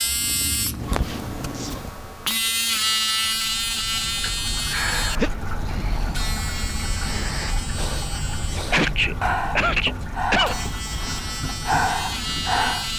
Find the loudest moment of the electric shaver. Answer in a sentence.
The loudest moment of the electric shaver is at 3 seconds.